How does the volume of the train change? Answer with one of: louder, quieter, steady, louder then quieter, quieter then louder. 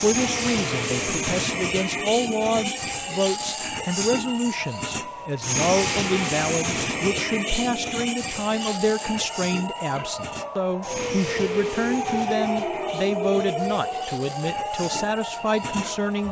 quieter.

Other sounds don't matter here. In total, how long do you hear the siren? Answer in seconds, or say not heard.
16 s.